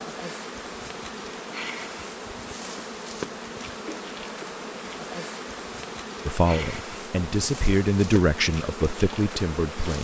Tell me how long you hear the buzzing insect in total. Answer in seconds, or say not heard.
10 s.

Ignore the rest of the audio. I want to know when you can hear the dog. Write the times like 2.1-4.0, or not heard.
not heard.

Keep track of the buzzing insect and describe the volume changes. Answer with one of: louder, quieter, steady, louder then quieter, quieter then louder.
steady.